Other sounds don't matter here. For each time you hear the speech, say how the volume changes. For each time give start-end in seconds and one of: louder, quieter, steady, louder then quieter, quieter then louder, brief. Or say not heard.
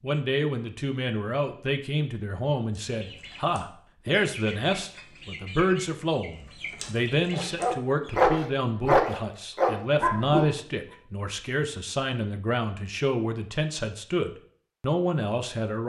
0.0-15.8 steady.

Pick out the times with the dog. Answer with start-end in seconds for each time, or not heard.
7.3-10.6.